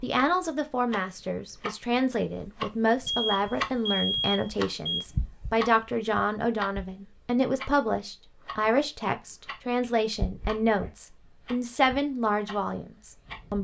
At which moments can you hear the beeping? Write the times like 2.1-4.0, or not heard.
3.0-5.0.